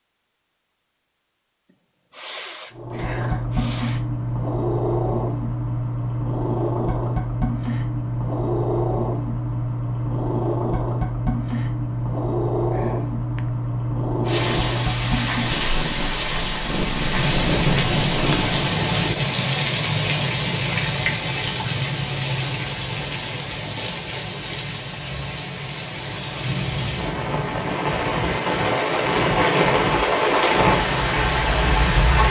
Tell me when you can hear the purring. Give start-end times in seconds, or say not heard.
2.7-18.6.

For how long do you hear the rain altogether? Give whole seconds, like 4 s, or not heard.
18 s.